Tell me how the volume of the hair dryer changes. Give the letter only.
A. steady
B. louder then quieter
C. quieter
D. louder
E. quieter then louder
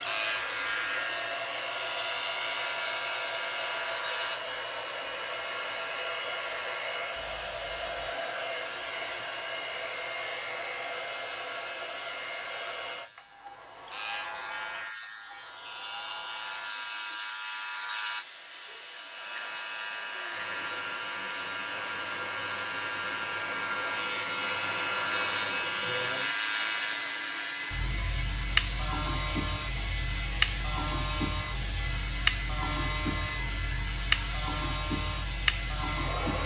E.